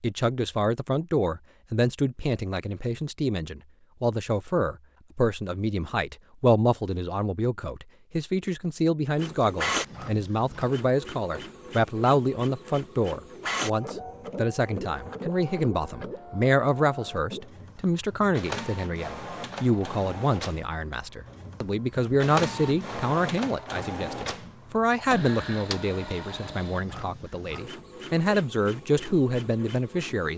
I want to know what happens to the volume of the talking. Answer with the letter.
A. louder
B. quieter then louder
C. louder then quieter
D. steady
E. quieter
D.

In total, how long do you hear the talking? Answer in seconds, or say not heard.
30 s.